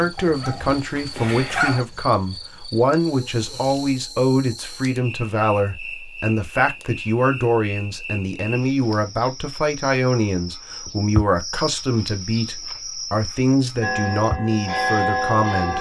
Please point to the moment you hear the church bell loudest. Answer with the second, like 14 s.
15 s.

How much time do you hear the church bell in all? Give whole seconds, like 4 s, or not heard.
2 s.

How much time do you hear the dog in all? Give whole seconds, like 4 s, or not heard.
2 s.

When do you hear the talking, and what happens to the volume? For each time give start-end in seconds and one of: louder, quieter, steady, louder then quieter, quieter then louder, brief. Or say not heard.
0.0-15.7 steady.